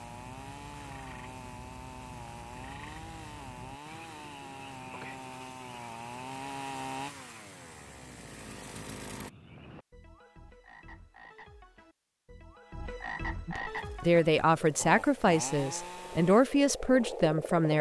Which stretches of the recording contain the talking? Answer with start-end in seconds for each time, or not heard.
13.4-17.7.